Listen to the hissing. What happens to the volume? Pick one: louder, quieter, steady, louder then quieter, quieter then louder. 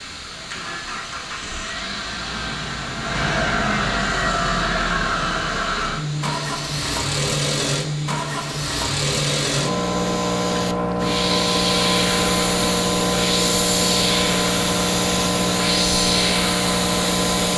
louder.